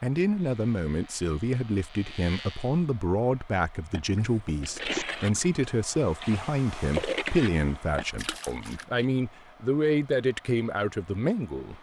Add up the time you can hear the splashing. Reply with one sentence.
The splashing can be heard for 5 seconds in total.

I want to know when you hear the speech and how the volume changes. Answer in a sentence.
You can hear the speech from 0.0 to 11.7 s, at a steady volume.